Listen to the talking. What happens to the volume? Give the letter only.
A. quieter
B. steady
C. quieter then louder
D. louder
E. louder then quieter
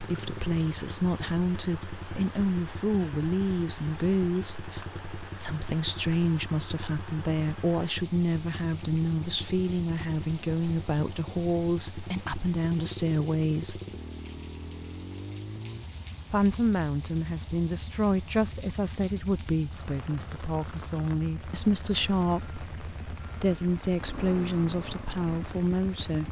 B.